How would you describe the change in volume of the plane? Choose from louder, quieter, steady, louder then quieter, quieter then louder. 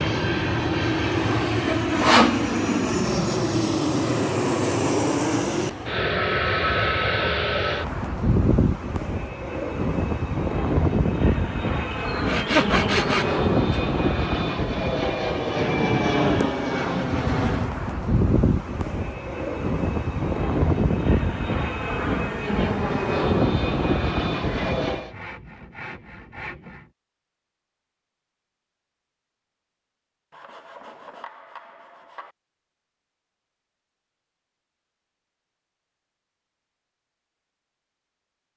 steady.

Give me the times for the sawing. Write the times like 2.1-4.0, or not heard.
1.1-2.4, 11.9-13.8, 24.4-26.9, 30.3-32.4.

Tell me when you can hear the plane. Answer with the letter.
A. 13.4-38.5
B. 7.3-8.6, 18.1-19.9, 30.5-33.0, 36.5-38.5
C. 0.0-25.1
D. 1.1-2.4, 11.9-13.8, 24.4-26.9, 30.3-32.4
C.